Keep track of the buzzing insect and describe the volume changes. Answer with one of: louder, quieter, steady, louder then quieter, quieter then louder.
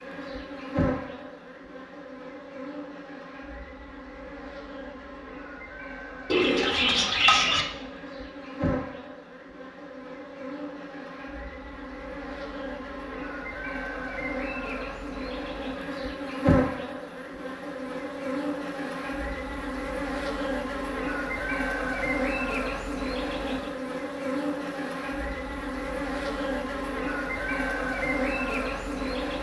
louder.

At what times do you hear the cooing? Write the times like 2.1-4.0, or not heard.
6.3-7.7.